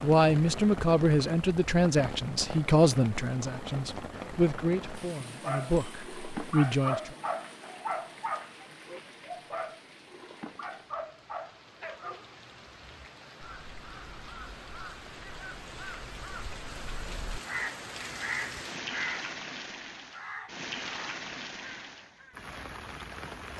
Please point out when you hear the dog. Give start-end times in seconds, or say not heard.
5.3-12.5.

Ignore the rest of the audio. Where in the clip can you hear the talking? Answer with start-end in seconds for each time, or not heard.
0.0-7.1.